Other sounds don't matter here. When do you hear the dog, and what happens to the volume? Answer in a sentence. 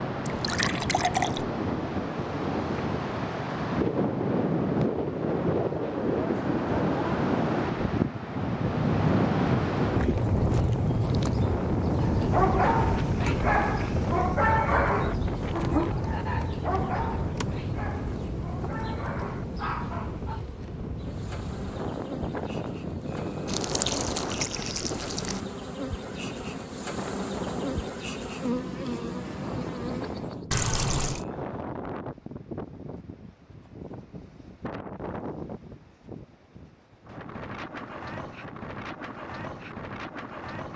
You can hear the dog from 12.0 to 20.4 s, getting quieter.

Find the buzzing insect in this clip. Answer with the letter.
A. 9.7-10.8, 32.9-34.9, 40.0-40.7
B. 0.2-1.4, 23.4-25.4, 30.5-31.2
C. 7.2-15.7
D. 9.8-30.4
D.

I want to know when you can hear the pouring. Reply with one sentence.
You can hear the pouring from 0.2 to 1.4 s, from 23.4 to 25.4 s and from 30.5 to 31.2 s.